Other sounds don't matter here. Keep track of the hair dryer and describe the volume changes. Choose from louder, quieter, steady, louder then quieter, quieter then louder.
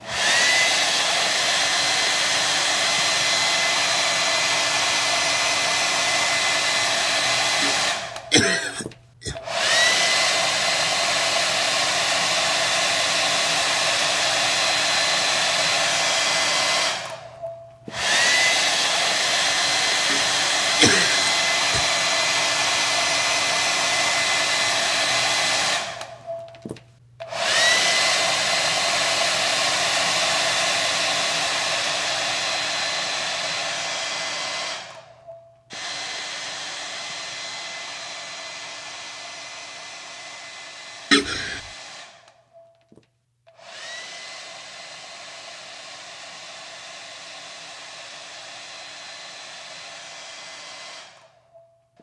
quieter.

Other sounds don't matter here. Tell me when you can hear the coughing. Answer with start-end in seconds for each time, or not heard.
7.6-9.3, 20.1-21.9, 41.1-41.6.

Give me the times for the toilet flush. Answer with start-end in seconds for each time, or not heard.
not heard.